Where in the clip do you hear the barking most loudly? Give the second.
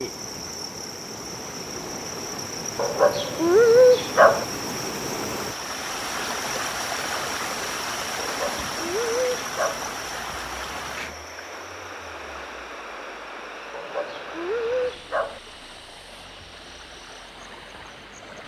4 s.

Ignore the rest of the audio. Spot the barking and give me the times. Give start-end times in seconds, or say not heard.
2.8-4.5, 8.2-9.8, 13.7-15.4.